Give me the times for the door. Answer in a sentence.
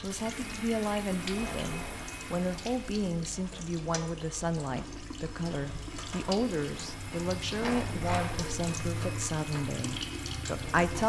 The door can be heard from 1.1 to 2.1 s and from 7.6 to 8.6 s.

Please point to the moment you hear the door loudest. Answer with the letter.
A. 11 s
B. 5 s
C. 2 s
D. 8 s
D.